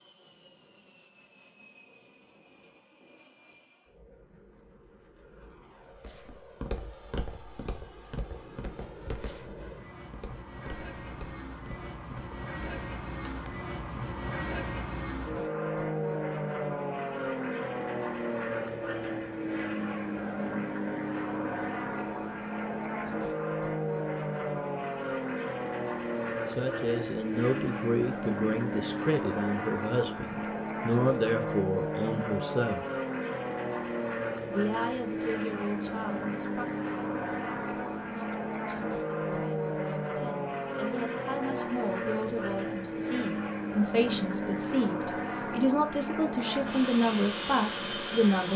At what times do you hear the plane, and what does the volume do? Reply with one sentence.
The plane can be heard from 0.0 to 48.5 s, getting louder.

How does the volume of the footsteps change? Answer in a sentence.
The volume of the footsteps goes down.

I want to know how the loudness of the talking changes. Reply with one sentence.
The volume of the talking goes down, then up.